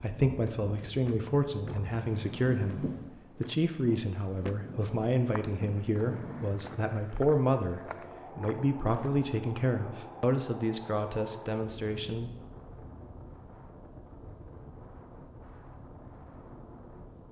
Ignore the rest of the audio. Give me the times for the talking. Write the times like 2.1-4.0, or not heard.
0.0-12.3.